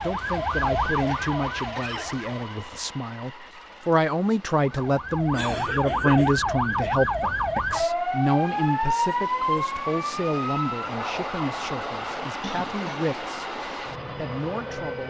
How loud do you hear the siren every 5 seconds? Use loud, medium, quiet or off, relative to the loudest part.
loud, loud, medium.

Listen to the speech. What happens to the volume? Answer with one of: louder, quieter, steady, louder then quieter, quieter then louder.
louder then quieter.